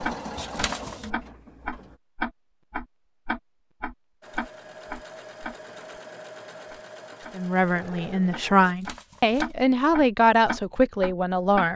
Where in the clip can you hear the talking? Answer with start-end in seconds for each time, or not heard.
7.3-11.7.